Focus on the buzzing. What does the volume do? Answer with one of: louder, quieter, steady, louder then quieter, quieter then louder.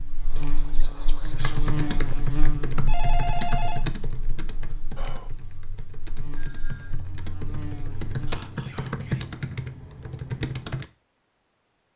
quieter then louder.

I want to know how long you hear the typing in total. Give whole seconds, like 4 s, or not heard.
10 s.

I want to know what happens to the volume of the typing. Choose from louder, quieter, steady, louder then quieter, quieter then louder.
quieter then louder.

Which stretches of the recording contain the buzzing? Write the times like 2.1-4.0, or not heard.
0.0-8.4.